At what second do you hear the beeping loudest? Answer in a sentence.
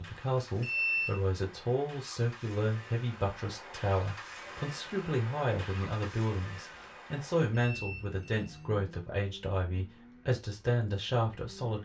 The volume of the beeping peaks at 1 second.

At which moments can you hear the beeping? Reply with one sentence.
You can hear the beeping from 0.6 to 1.2 s and from 7.5 to 8.7 s.